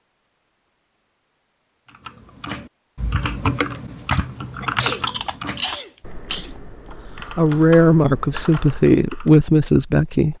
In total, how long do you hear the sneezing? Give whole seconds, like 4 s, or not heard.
2 s.